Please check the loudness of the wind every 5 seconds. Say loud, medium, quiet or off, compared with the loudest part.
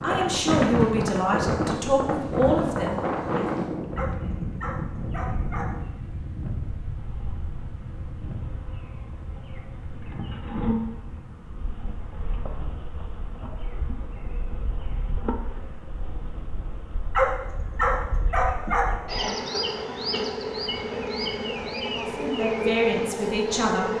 loud, medium, quiet, quiet, quiet.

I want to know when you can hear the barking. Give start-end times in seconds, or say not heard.
4.0-5.7, 17.1-18.9.